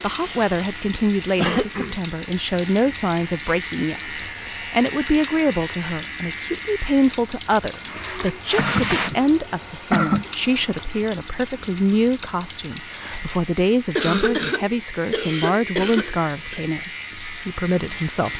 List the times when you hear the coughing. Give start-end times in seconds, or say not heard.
1.4-1.9, 7.7-10.2, 13.9-16.6.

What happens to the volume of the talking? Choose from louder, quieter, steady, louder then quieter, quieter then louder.
steady.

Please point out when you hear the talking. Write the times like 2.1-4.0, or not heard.
0.0-18.3.